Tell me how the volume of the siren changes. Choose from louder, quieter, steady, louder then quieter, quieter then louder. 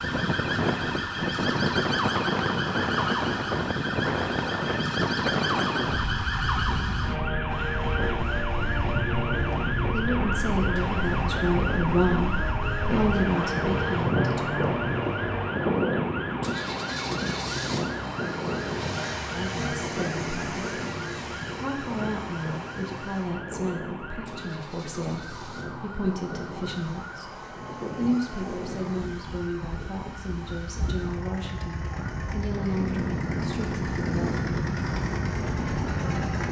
quieter.